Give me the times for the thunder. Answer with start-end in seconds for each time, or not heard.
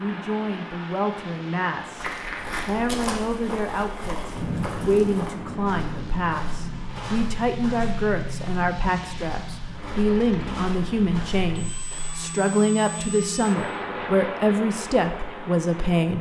4.3-6.9.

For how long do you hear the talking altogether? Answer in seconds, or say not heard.
16 s.